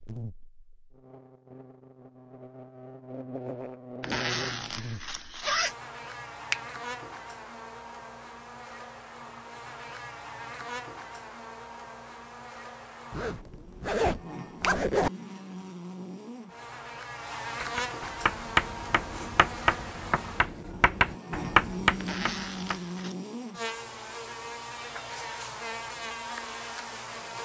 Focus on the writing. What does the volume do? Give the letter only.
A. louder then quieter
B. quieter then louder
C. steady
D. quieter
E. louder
B.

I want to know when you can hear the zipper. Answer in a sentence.
You can hear the zipper from 4.0 to 5.8 s, from 13.1 to 15.1 s and from 21.9 to 23.1 s.